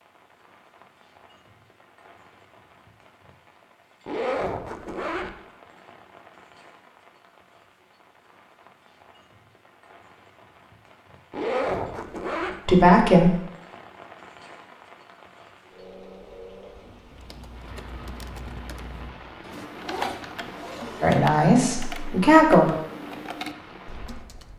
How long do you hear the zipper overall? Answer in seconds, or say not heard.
4 s.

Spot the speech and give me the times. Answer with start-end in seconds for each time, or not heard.
12.7-13.3, 21.0-22.7.